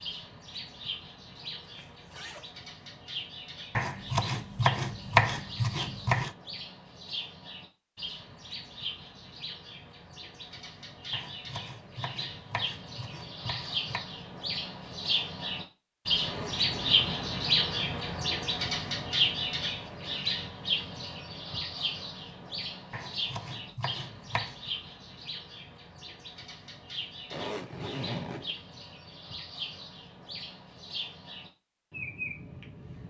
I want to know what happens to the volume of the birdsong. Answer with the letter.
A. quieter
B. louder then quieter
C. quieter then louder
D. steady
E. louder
B.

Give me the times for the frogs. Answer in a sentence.
You can't hear the frogs here.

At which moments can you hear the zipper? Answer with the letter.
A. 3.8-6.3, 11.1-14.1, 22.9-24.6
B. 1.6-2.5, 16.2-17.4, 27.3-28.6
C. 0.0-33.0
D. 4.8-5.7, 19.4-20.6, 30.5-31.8
B.